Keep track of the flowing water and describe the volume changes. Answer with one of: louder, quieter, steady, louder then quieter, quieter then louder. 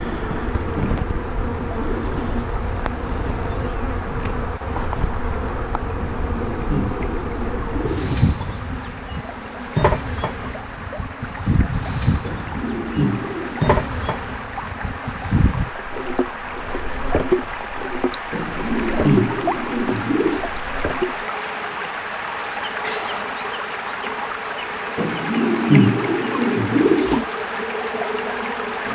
louder.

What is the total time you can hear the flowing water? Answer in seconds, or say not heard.
29 s.